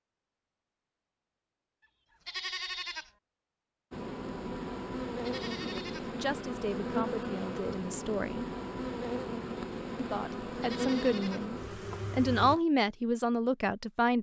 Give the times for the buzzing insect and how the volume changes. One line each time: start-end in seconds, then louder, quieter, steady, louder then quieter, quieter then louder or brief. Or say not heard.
3.9-12.6 steady.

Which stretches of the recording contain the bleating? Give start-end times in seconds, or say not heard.
2.2-3.1, 5.2-6.1, 10.6-11.4.